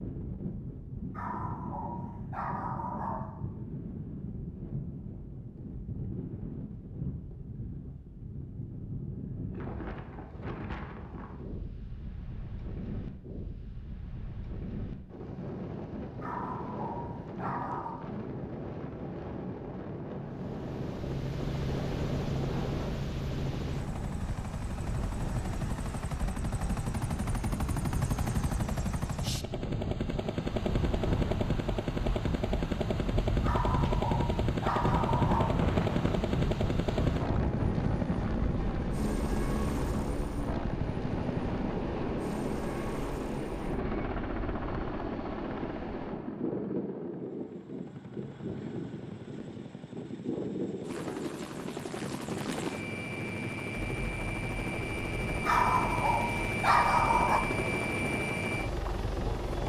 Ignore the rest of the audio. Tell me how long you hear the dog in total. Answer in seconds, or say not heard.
8 s.